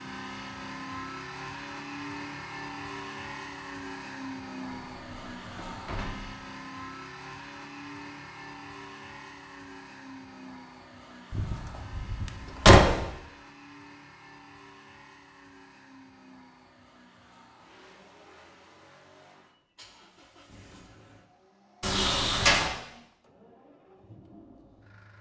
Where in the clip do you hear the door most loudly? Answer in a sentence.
The loudest moment of the door is at 13 seconds.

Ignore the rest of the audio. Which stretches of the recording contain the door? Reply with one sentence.
You can hear the door from 4.7 to 6.3 s, from 11.3 to 13.1 s and from 21.8 to 22.7 s.